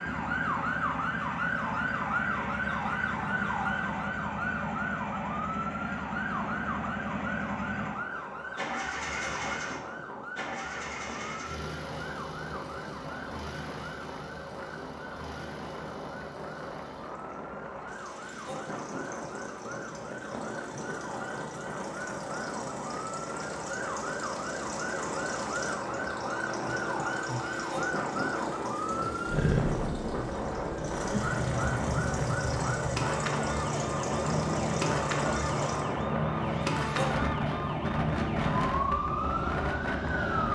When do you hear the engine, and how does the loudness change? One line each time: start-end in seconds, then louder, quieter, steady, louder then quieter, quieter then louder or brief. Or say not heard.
0.0-36.1 quieter then louder.